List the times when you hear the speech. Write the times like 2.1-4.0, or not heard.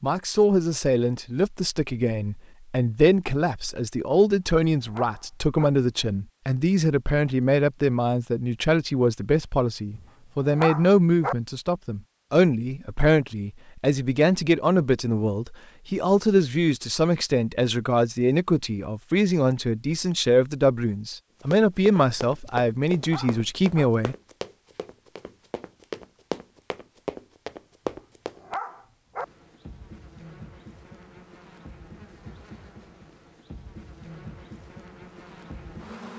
0.0-24.1.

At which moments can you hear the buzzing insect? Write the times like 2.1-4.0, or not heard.
29.1-36.1.